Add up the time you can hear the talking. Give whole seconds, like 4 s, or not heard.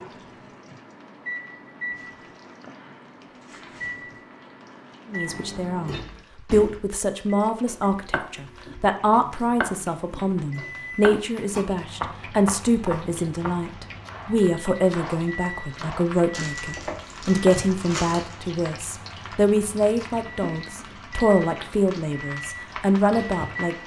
19 s.